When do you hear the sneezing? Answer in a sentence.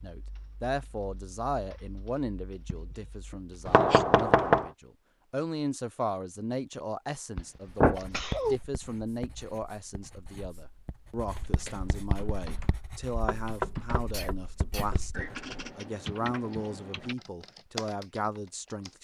The sneezing can be heard from 2.6 to 4.0 s, from 8.0 to 8.6 s and from 14.1 to 14.8 s.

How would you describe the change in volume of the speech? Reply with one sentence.
The loudness of the speech stays about the same.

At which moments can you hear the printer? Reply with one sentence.
The printer can't be heard in this clip.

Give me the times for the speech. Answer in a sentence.
You can hear the speech from 0.0 to 18.9 s.